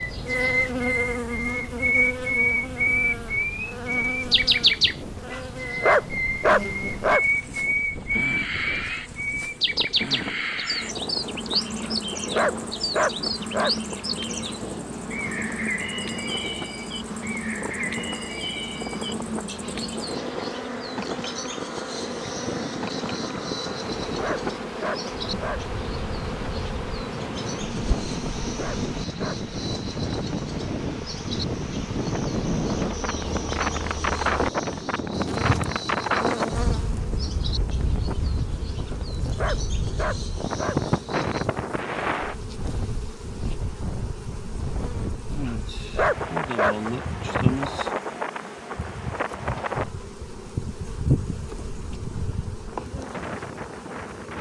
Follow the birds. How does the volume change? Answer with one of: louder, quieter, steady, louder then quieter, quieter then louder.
quieter.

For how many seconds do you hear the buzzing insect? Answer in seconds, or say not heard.
54 s.